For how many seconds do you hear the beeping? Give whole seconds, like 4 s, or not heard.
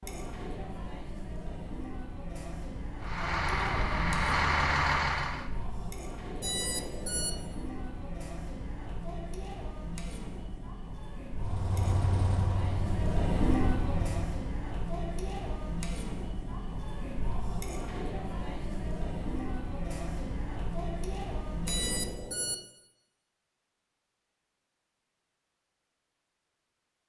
2 s.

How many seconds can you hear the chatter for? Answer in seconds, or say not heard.
22 s.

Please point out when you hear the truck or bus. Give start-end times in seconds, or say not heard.
3.0-5.5, 11.3-14.5.